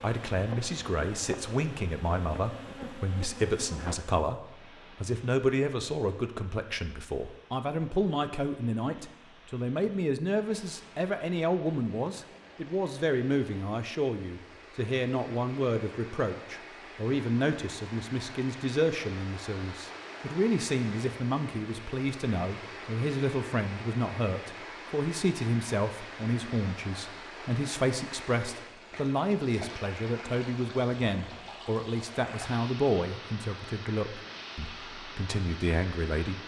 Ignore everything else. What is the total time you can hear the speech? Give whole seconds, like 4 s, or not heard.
36 s.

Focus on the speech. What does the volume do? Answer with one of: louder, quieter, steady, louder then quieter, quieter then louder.
steady.